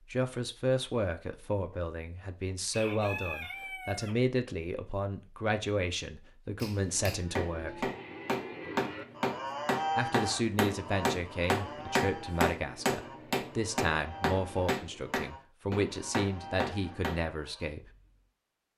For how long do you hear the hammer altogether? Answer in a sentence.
The hammer can be heard for 11 seconds in total.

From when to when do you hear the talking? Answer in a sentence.
You can hear the talking from 0.1 to 7.9 s and from 9.9 to 17.9 s.